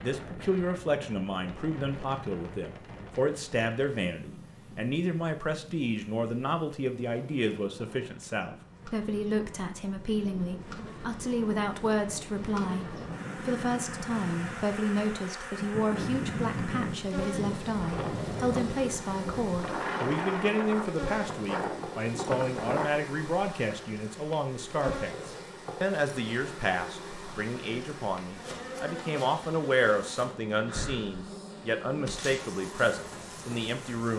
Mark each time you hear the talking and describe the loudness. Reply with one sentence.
You can hear the talking from 0.0 to 34.1 s, at a steady volume.